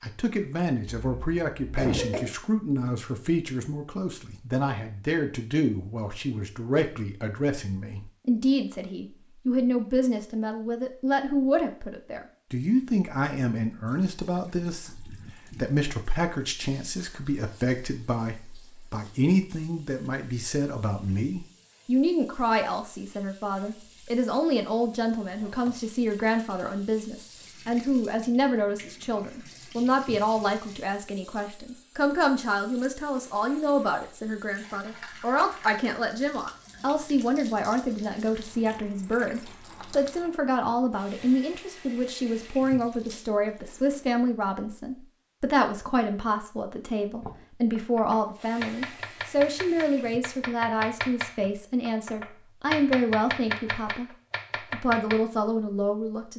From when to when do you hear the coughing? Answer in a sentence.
The coughing can be heard from 0.8 to 2.3 s.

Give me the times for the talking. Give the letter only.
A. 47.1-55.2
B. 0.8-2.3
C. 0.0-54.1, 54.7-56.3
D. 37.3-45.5
C.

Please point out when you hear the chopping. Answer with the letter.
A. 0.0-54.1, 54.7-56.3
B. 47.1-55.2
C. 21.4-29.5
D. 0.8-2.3
B.